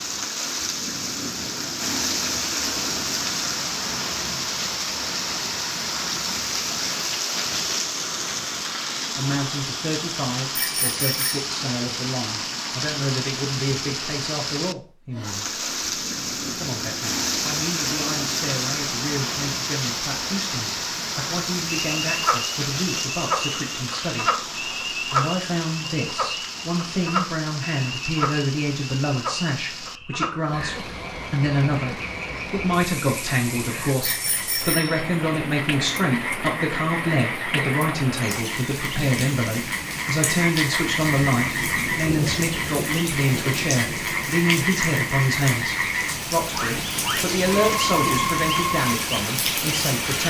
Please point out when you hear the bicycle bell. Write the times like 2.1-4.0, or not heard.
10.6-11.3, 34.0-35.0.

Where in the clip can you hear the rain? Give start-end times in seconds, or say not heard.
0.0-50.2.